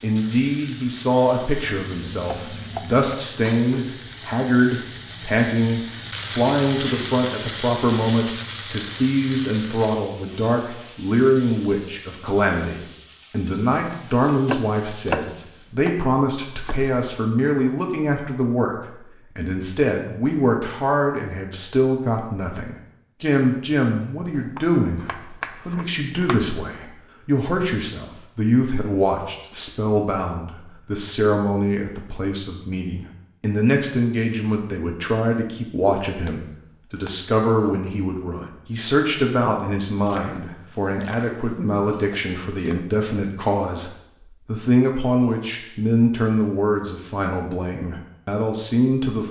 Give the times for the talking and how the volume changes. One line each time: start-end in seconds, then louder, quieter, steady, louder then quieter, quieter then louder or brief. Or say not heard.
0.0-49.2 steady.